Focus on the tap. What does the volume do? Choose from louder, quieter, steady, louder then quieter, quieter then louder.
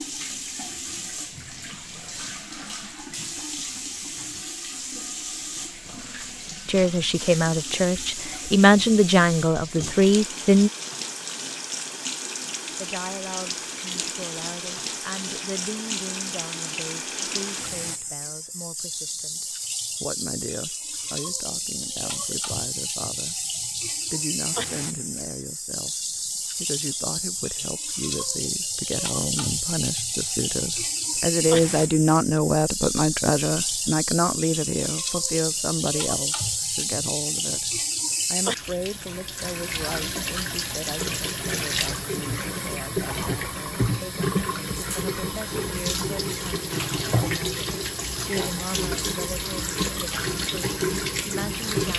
louder.